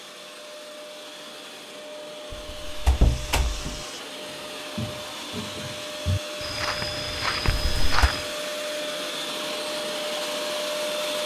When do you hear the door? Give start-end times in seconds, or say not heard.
2.3-3.8, 7.5-8.1.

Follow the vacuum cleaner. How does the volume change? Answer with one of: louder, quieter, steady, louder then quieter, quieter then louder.
louder.